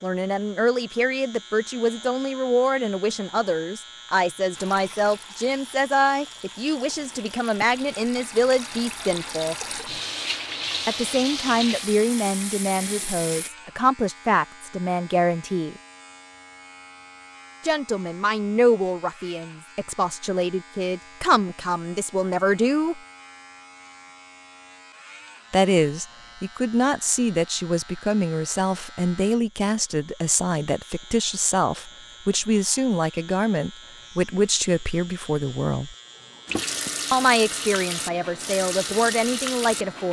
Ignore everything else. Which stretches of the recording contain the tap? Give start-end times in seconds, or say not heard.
4.5-13.5, 36.5-40.0.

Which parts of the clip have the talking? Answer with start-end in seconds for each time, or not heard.
0.0-9.6, 10.8-15.8, 17.6-23.0, 25.5-36.0, 37.1-40.0.